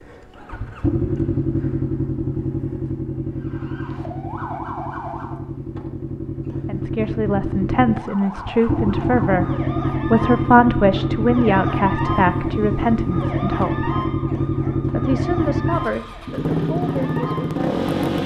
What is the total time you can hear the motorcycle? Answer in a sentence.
The motorcycle can be heard for 18 seconds in total.